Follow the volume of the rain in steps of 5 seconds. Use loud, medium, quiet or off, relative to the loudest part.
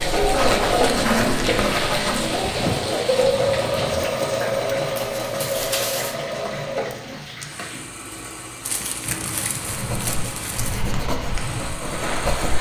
loud, medium, loud.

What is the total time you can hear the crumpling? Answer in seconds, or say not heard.
4 s.